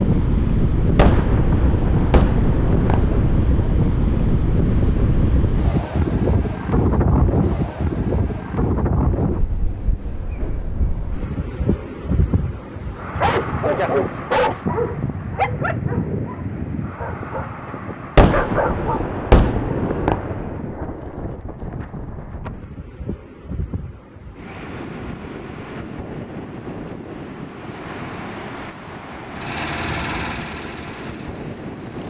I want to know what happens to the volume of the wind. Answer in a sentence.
The volume of the wind goes down.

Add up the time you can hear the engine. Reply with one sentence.
You can hear the engine for 3 seconds altogether.